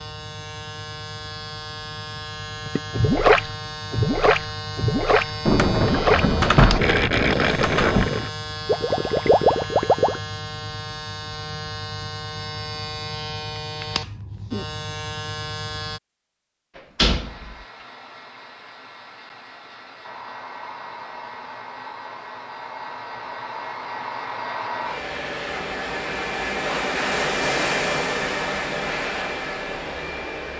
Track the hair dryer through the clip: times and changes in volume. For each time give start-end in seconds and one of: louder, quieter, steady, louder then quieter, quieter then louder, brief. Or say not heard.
17.1-30.5 louder.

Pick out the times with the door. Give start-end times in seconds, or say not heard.
5.5-8.1, 16.8-17.6.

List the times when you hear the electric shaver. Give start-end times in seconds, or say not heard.
0.0-16.0.